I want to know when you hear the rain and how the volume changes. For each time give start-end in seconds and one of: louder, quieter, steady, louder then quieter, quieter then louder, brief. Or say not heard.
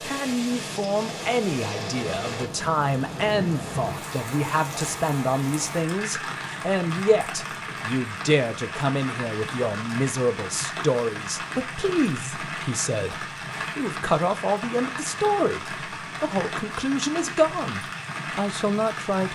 0.0-19.2 steady.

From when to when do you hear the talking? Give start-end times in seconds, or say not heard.
0.0-19.2.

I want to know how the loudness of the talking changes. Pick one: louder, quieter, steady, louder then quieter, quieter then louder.
steady.